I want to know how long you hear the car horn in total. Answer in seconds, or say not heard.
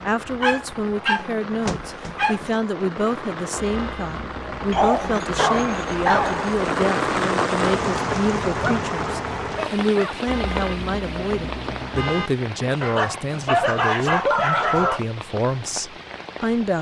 3 s.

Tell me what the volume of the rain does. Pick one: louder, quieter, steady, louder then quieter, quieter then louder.
louder then quieter.